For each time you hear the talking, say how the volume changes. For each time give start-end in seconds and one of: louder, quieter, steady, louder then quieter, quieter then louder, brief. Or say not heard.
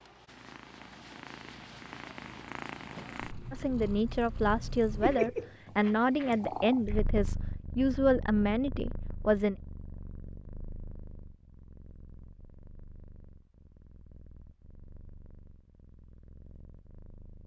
3.5-9.6 steady.